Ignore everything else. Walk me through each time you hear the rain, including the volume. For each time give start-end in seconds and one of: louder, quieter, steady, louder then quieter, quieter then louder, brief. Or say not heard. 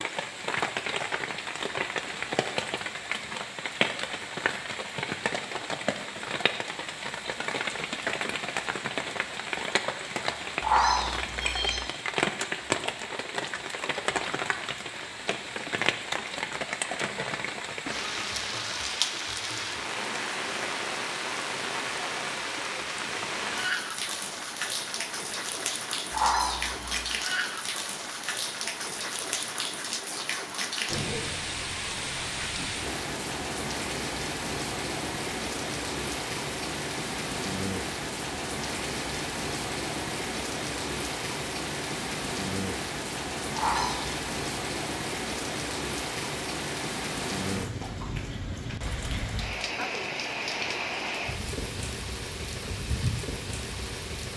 0.0-54.3 steady.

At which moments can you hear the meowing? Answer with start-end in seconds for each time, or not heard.
10.6-11.8, 26.1-27.1, 43.5-44.1.